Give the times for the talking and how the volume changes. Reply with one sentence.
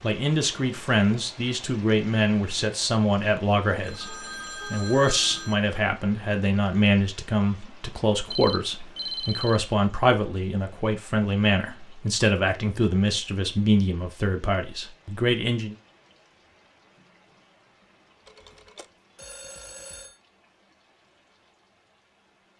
You can hear the talking from 0.0 to 15.8 s, at a steady volume.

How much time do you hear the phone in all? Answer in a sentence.
The phone can be heard for 5 seconds in total.